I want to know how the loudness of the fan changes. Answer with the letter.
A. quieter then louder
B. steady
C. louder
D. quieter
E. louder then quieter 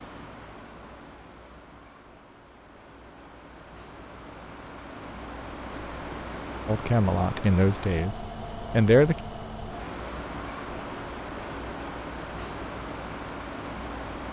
C.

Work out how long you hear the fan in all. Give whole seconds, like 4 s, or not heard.
14 s.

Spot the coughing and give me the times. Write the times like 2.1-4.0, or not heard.
not heard.